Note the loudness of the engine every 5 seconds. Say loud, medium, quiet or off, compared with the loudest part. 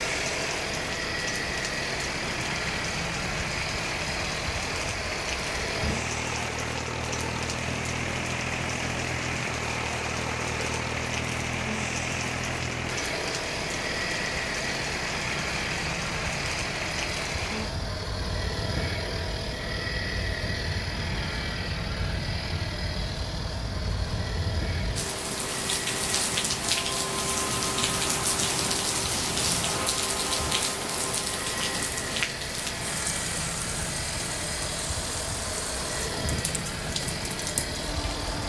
loud, loud, loud, loud, loud, medium, loud, loud.